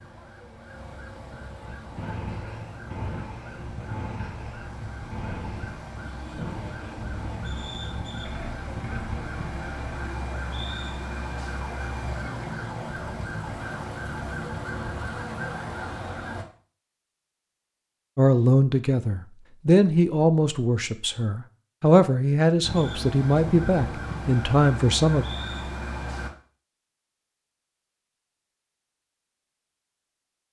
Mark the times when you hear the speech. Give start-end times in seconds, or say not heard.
18.1-25.2.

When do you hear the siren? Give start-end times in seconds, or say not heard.
0.0-16.4, 22.6-26.3.